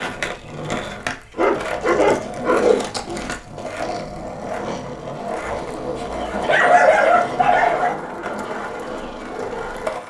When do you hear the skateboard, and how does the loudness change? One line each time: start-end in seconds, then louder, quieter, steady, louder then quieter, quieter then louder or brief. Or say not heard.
0.0-10.0 steady.